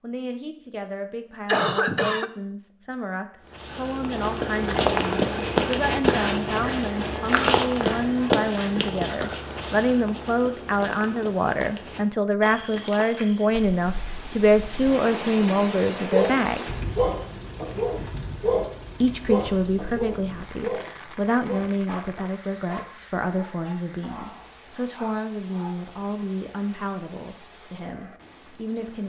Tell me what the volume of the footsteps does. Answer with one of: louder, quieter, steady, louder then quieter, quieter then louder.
quieter.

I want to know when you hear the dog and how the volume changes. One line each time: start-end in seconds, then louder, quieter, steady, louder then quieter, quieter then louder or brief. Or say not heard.
16.1-25.8 quieter.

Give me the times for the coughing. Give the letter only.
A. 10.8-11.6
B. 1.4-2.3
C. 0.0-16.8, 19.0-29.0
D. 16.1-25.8
B.